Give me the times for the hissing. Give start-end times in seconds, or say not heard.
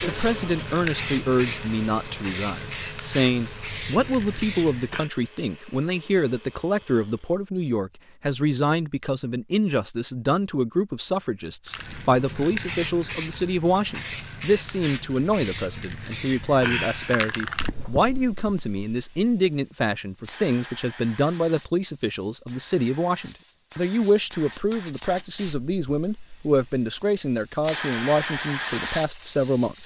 0.0-5.1, 11.7-29.8.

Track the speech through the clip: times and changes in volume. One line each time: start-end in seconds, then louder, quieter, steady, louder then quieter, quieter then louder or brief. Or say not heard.
0.0-29.8 steady.